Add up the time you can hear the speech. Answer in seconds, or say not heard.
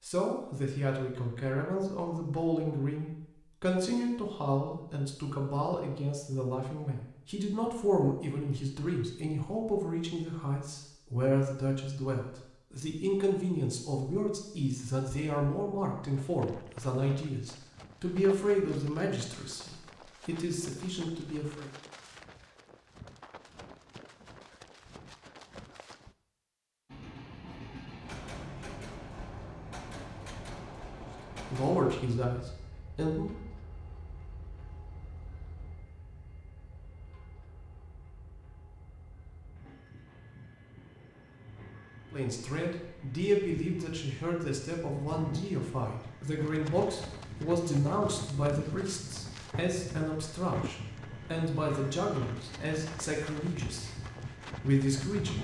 36 s.